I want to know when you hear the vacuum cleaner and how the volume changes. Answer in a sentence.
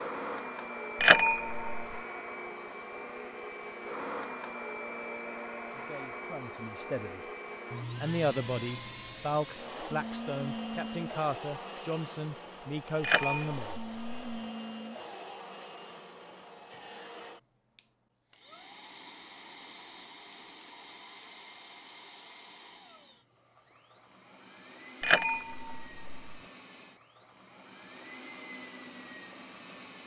The vacuum cleaner can be heard from 0.0 to 30.0 s, getting quieter.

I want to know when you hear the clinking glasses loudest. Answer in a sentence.
The volume of the clinking glasses peaks at 1 second.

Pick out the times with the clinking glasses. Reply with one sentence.
You can hear the clinking glasses from 1.0 to 2.0 s, from 13.0 to 14.4 s and from 25.0 to 26.4 s.